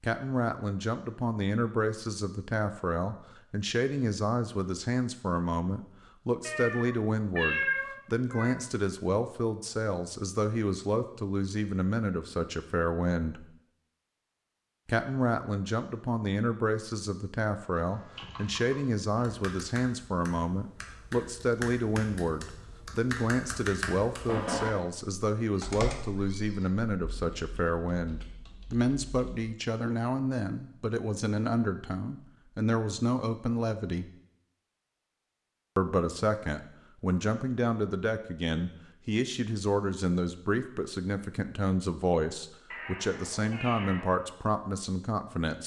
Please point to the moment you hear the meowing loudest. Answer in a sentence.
The loudest moment of the meowing is at 8 seconds.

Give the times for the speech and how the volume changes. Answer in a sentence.
You can hear the speech from 0.0 to 13.4 s, at a steady volume; from 14.8 to 34.1 s, at a steady volume; and from 35.8 to 45.6 s, at a steady volume.